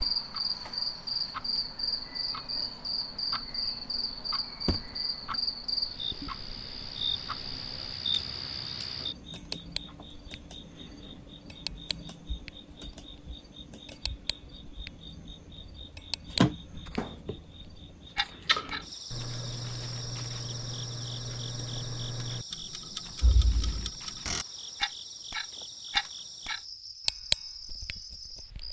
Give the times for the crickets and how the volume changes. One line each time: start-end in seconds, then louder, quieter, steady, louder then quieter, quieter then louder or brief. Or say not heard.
0.0-28.6 quieter.